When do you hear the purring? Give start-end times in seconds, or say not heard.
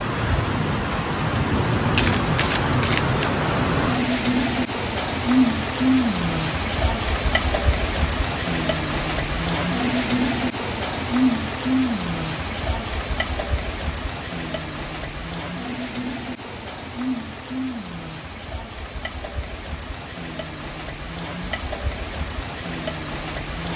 not heard.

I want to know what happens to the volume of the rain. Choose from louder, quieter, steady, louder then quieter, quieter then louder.
quieter.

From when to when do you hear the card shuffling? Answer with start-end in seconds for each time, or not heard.
1.9-3.2.